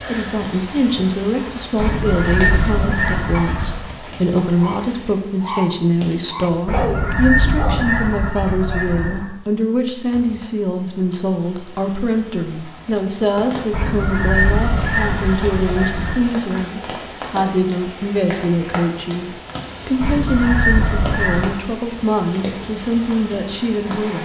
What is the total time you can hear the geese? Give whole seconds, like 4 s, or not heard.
9 s.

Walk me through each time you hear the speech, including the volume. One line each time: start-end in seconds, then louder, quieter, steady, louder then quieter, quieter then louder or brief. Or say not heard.
0.0-24.2 steady.